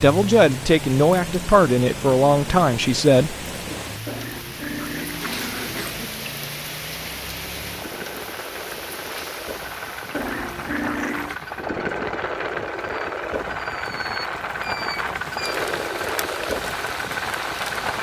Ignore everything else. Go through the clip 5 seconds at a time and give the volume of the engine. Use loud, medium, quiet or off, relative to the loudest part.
medium, medium, loud, loud.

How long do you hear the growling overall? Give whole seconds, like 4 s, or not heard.
3 s.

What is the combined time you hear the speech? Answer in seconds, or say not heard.
4 s.